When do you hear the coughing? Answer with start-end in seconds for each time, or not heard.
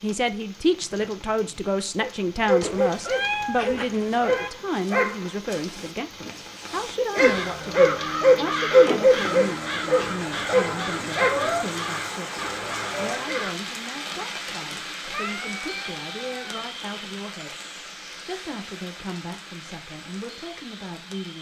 not heard.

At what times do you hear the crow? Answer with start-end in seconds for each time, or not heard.
7.2-13.6.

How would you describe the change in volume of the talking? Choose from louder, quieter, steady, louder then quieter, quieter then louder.
quieter.